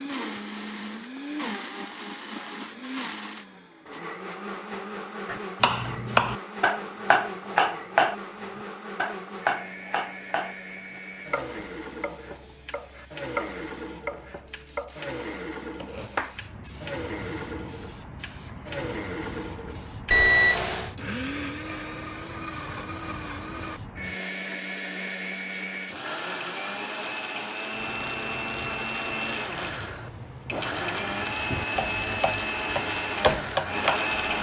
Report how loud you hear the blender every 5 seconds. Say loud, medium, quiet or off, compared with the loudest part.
medium, medium, medium, medium, medium, loud, loud.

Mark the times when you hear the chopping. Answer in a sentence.
The chopping can be heard from 5.2 to 16.4 s and from 31.5 to 34.1 s.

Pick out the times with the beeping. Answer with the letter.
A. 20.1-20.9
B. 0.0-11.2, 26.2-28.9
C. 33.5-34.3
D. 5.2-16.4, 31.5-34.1
A.